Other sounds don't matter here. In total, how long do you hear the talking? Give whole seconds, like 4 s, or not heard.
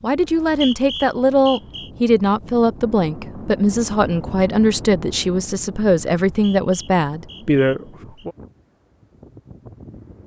8 s.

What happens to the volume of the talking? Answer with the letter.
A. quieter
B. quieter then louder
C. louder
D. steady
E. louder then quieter
D.